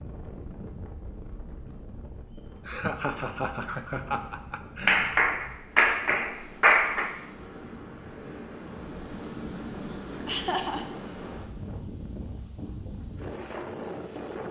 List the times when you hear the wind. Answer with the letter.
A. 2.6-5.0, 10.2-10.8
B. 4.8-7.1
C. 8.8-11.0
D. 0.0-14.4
D.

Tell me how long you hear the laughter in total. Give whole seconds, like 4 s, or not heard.
3 s.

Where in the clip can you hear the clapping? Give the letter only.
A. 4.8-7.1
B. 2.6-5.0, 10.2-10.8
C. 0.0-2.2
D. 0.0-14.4
A.